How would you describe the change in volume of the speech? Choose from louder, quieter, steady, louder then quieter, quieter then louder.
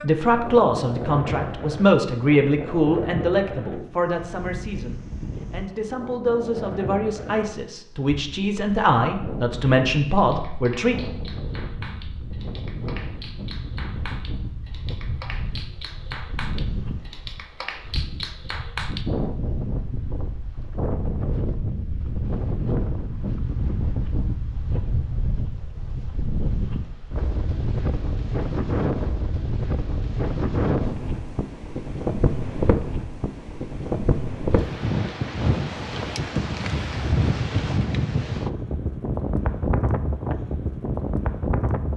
quieter then louder.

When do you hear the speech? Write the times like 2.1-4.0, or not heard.
0.0-10.9.